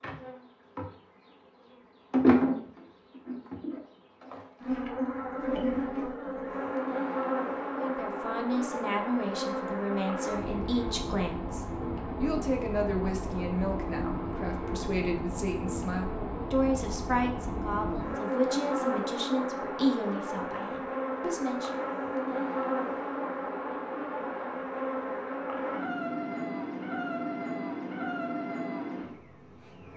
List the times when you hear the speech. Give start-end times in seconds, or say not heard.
7.7-21.7.